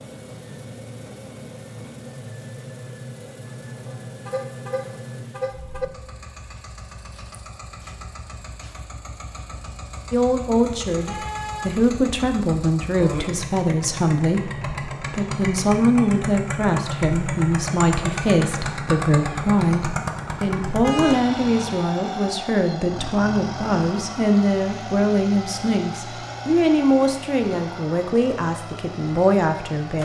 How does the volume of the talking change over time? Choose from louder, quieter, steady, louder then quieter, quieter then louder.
steady.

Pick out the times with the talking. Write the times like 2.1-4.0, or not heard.
10.1-30.0.